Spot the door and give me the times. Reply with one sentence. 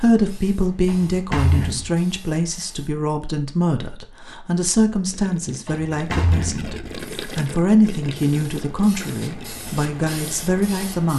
You can hear the door from 0.8 to 1.9 s and from 5.7 to 6.7 s.